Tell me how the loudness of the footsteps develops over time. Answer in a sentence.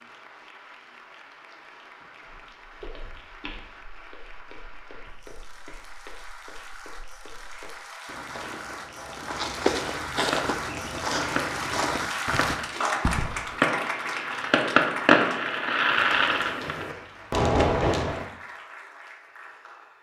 The loudness of the footsteps goes up.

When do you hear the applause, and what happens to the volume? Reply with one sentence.
The applause can be heard from 0.0 to 19.9 s, getting louder then quieter.